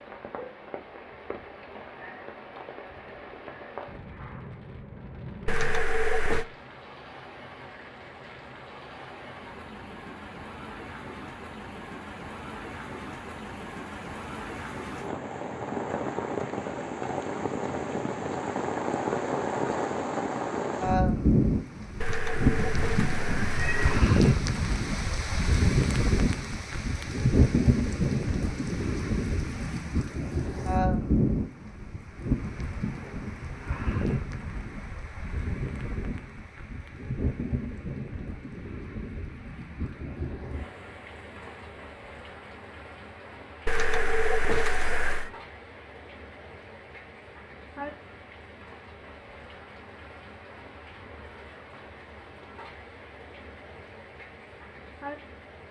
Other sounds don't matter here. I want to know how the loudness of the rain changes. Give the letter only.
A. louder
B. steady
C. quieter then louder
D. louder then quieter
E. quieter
D.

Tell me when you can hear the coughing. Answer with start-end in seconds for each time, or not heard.
not heard.